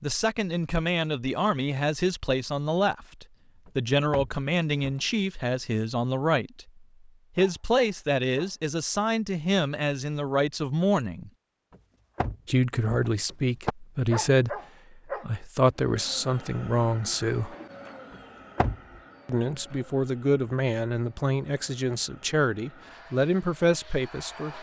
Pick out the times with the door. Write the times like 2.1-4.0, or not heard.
3.6-5.0, 12.2-13.8, 18.1-18.8.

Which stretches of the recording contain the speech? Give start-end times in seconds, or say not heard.
0.0-6.7, 7.3-11.3, 12.4-17.6, 19.2-24.5.